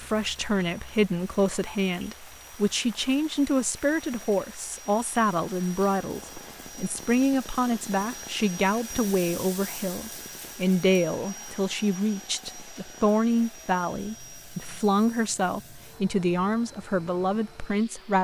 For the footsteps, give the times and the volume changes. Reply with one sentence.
You can't hear the footsteps here.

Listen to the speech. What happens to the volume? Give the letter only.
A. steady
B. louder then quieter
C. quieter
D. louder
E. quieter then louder
A.